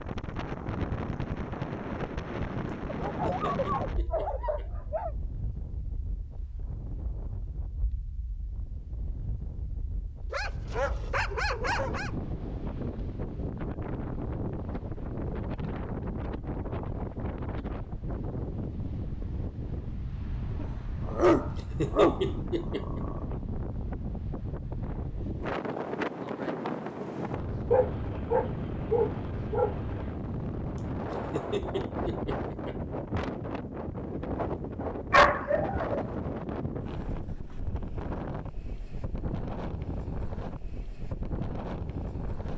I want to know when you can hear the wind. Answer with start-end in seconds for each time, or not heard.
0.0-42.5.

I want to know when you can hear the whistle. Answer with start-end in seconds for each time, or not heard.
not heard.